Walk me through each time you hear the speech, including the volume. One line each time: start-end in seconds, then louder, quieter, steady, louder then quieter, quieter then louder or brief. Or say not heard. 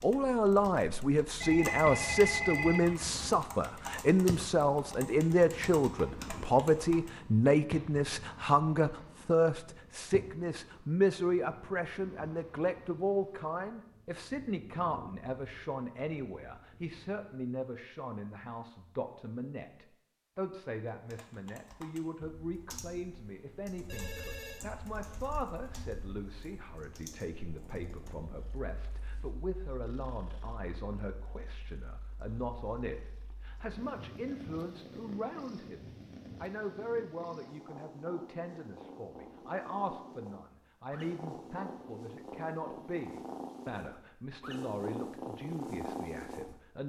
0.0-46.8 quieter.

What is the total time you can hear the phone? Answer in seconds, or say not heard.
3 s.